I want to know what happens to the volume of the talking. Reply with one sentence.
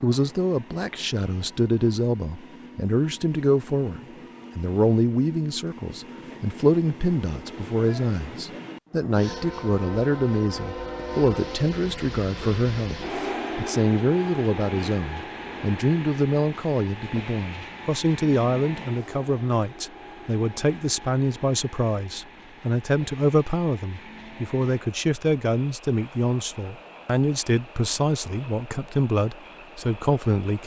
The volume of the talking stays about the same.